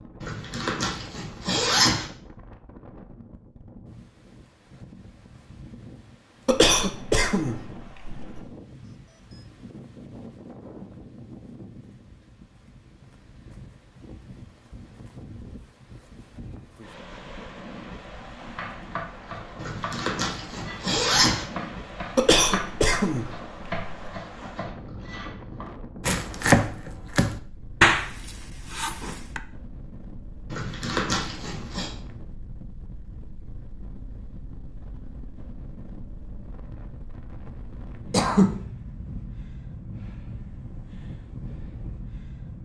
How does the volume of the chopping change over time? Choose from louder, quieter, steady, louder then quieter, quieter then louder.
louder.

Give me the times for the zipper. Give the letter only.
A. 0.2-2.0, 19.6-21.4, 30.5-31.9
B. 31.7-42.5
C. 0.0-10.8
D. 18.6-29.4
A.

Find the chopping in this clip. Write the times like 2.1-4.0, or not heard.
18.6-29.4.